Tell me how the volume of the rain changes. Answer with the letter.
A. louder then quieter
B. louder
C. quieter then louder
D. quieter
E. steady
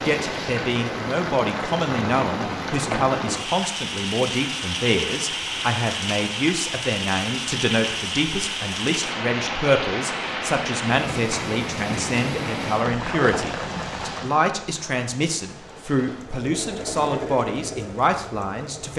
D.